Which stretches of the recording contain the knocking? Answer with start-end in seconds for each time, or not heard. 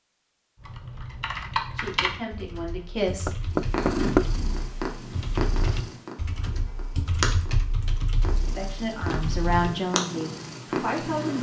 3.2-4.3.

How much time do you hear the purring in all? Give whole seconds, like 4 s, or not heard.
8 s.